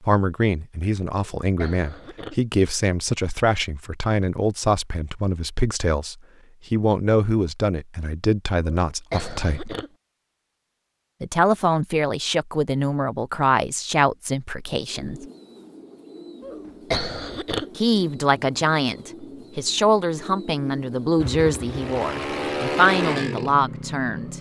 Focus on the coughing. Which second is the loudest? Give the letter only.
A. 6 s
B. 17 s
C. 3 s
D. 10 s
B.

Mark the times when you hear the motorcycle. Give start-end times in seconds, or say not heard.
21.1-24.3.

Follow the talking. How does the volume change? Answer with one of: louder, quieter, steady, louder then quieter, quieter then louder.
steady.